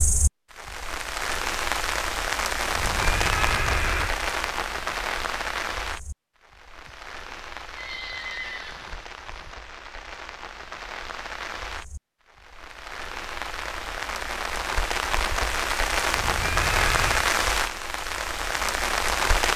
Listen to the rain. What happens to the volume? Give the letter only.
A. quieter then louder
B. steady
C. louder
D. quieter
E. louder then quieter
A.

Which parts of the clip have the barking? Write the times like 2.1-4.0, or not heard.
not heard.